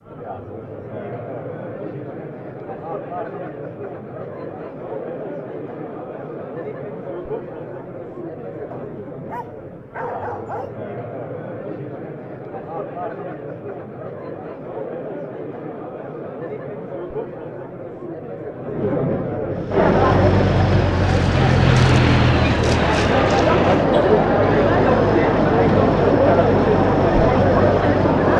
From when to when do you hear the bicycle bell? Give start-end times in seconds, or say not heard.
not heard.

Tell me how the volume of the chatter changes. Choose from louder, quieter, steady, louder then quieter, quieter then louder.
louder.